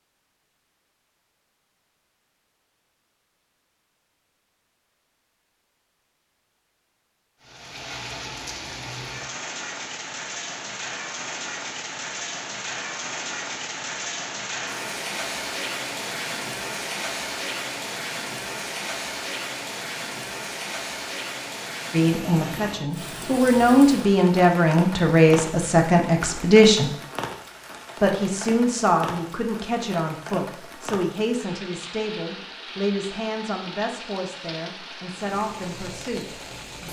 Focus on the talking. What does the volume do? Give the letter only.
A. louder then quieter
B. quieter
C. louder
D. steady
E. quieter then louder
B.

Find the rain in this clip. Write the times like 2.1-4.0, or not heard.
7.4-36.8.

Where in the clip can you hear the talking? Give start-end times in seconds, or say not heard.
21.9-26.9, 28.0-36.4.